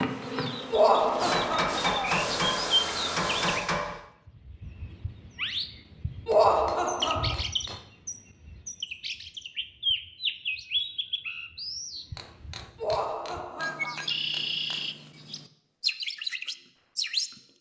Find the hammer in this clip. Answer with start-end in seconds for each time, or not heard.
1.1-4.0, 6.3-7.8, 12.2-14.8.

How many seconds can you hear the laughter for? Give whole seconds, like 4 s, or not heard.
4 s.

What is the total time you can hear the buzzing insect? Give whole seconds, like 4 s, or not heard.
2 s.